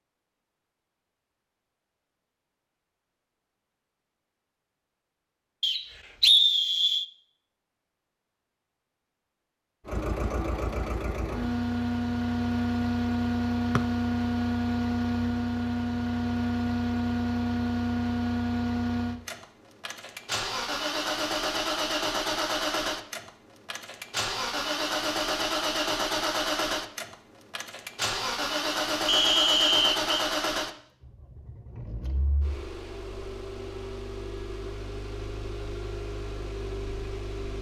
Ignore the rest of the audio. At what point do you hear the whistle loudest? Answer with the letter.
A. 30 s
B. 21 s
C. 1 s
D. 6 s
D.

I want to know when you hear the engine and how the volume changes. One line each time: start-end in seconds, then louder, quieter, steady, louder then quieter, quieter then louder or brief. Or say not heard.
9.8-37.5 quieter.